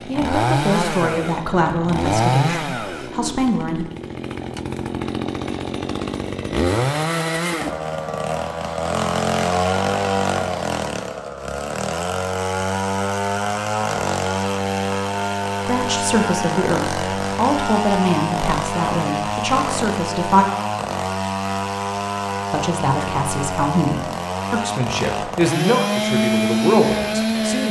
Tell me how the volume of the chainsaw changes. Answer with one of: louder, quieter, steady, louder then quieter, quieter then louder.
steady.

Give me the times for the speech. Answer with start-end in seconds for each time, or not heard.
0.1-3.9, 15.7-20.4, 22.5-27.6.